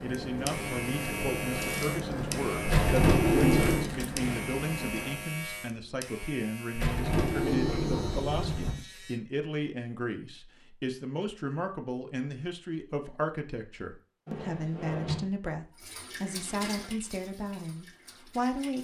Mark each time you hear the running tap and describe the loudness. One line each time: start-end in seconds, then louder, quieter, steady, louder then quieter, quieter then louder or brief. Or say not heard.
0.0-5.3 steady
15.8-18.7 brief.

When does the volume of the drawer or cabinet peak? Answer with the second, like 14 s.
3 s.